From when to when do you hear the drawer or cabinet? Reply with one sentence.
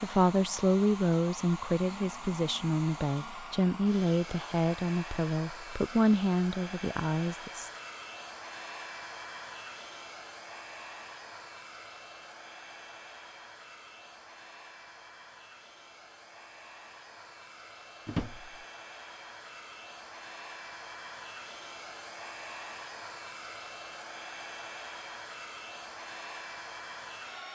You can hear the drawer or cabinet from 18.1 to 18.6 s.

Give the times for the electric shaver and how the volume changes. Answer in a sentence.
The electric shaver can't be heard in this clip.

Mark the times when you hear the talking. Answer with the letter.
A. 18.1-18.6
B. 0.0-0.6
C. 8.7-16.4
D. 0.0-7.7
D.